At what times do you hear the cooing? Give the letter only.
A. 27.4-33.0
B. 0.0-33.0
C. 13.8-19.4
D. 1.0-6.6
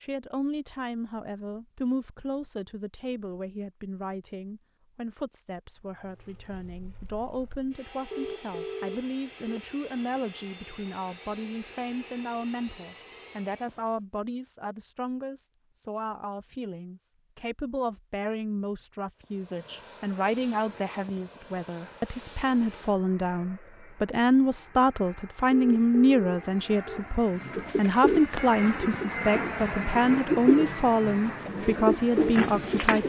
A.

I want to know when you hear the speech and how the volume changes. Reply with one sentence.
The speech can be heard from 0.0 to 33.0 s, getting louder.